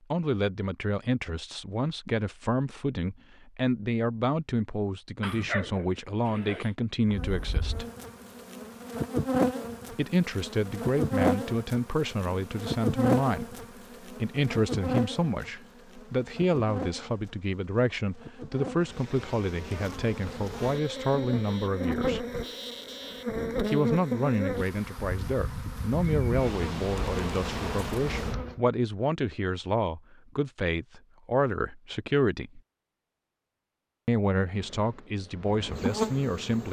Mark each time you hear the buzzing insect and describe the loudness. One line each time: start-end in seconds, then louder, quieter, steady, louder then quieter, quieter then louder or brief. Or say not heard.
7.0-28.6 quieter then louder
34.5-36.6 brief.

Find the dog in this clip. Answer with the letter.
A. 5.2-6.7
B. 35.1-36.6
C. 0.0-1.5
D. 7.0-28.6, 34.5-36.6
A.